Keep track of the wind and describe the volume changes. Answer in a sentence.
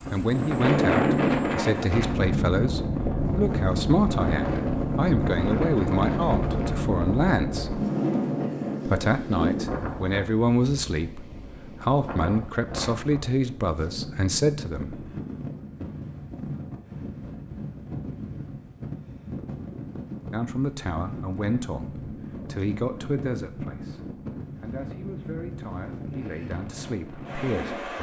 The loudness of the wind goes down.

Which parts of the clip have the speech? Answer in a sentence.
You can hear the speech from 0.1 to 7.8 s, from 8.8 to 15.1 s and from 20.3 to 27.9 s.